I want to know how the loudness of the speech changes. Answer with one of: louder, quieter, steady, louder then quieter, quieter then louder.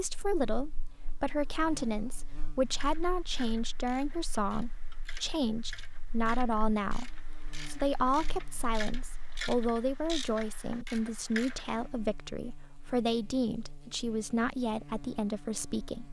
steady.